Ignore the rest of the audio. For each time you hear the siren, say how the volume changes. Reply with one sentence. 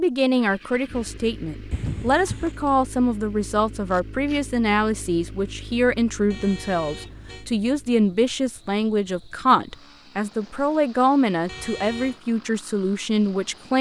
You can't hear the siren here.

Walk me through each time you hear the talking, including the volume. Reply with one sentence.
The talking can be heard from 0.0 to 13.7 s, at a steady volume.